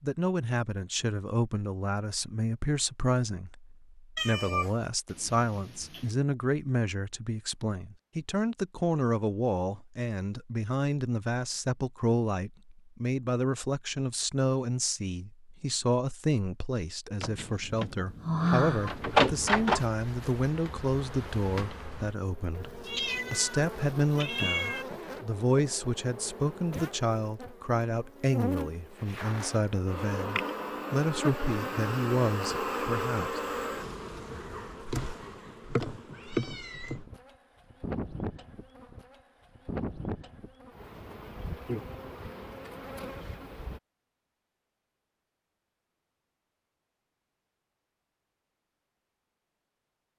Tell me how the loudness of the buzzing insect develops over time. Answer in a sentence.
The volume of the buzzing insect goes up, then down.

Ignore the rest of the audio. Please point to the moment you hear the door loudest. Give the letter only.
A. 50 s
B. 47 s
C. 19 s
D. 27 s
C.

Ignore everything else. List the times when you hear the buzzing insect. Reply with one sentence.
You can hear the buzzing insect from 18.8 to 43.8 s.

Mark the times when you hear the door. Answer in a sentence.
The door can be heard from 17.2 to 19.8 s.